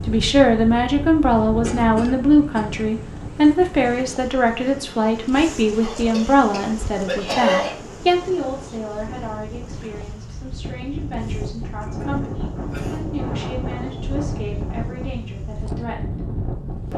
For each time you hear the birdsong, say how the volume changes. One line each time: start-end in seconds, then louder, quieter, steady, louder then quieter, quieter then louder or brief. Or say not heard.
not heard.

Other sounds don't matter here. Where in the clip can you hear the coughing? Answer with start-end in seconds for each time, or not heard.
1.6-2.7, 5.8-7.8, 11.8-13.0.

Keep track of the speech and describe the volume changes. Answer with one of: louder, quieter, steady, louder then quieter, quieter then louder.
quieter.